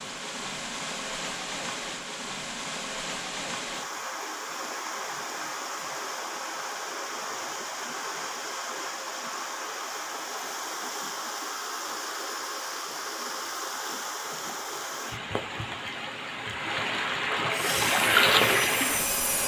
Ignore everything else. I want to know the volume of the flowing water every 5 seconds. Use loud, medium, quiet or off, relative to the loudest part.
medium, medium, medium, loud.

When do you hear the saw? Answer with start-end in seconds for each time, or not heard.
17.5-19.4.